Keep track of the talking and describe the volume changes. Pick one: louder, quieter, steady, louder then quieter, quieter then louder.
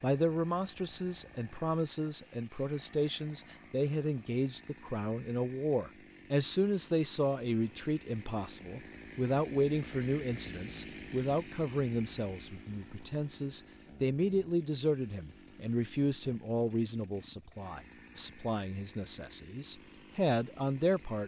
steady.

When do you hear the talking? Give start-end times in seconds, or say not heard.
0.0-21.2.